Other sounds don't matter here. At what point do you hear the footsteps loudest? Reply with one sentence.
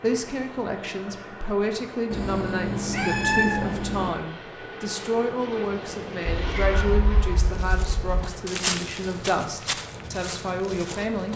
The volume of the footsteps peaks at 9 seconds.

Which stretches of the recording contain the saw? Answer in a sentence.
You can't hear the saw here.